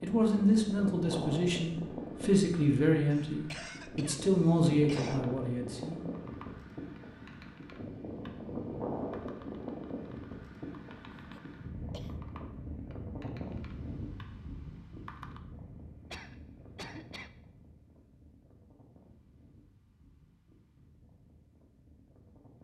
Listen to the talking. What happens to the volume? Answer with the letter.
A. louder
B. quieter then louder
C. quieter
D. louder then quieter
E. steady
E.